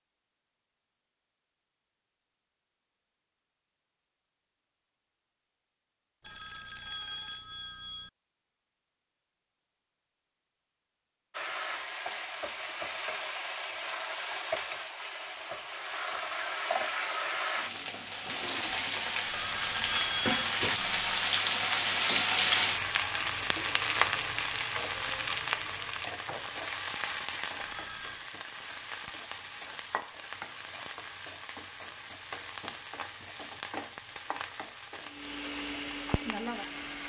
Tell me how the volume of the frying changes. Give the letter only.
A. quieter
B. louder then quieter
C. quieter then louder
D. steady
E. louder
B.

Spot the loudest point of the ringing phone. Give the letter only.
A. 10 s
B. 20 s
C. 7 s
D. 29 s
B.